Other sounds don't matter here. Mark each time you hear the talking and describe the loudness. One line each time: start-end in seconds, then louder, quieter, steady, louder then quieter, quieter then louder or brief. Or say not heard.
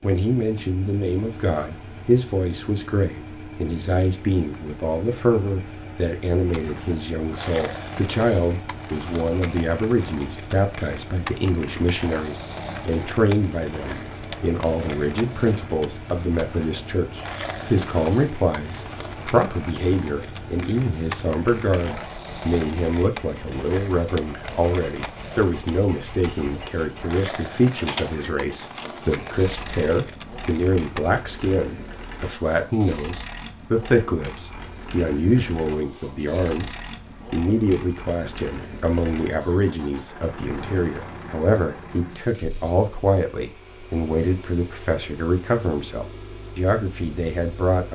0.0-47.9 steady.